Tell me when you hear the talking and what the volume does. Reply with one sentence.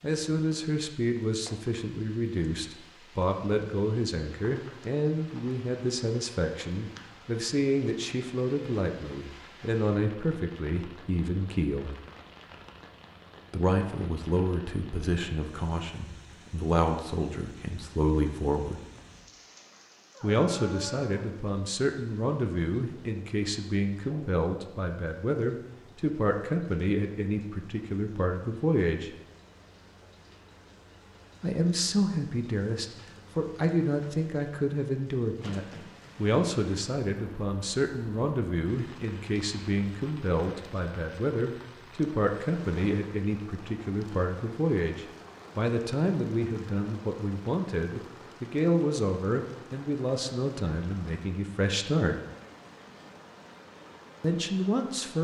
The talking can be heard from 0.0 to 11.9 s, at a steady volume; from 13.5 to 18.8 s, getting quieter then louder; from 20.2 to 29.1 s, at a steady volume; from 31.4 to 52.1 s, at a steady volume; and briefly from 54.2 to 55.1 s.